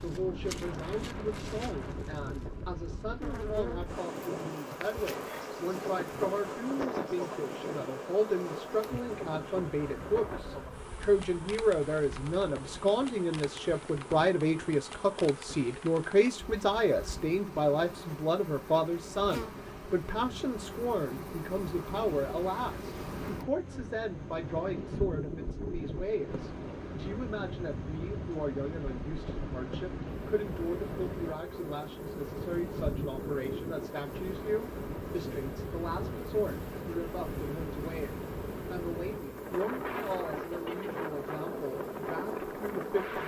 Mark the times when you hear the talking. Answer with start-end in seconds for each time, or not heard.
0.0-43.2.